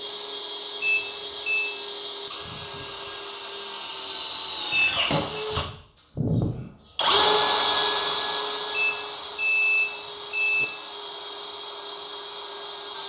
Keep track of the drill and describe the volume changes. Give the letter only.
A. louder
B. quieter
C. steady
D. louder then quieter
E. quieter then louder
D.